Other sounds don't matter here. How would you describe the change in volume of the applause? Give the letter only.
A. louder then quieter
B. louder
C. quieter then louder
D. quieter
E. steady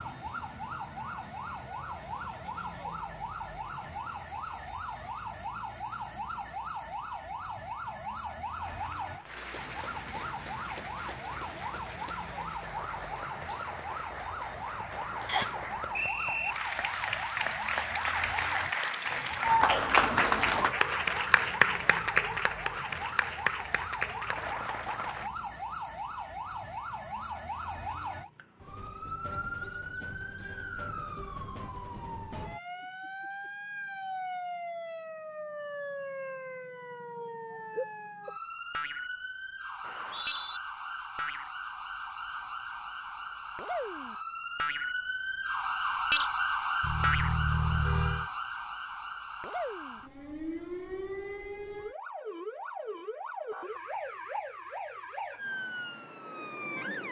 A.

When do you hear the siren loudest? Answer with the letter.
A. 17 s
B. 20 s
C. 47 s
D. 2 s
C.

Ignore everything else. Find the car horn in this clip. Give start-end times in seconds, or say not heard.
46.8-48.3.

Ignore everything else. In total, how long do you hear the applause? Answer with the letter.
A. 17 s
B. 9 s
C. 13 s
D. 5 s
A.